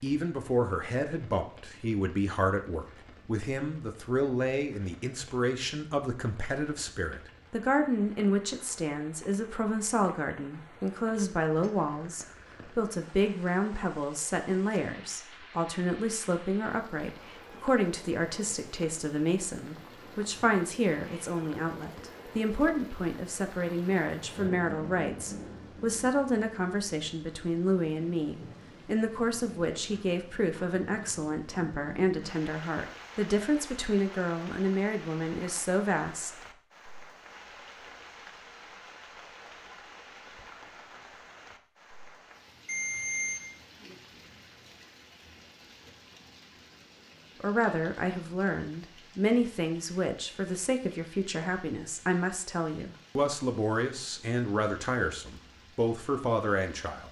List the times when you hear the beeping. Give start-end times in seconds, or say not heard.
42.6-43.4.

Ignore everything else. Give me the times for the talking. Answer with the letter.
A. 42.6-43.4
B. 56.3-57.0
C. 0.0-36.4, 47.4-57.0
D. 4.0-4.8
C.